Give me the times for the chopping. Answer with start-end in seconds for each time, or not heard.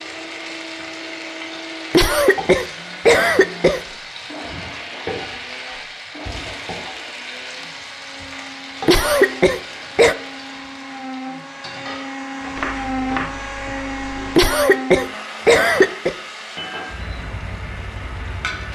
12.6-14.4.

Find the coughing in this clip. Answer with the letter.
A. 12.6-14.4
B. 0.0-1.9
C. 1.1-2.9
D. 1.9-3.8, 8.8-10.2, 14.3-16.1
D.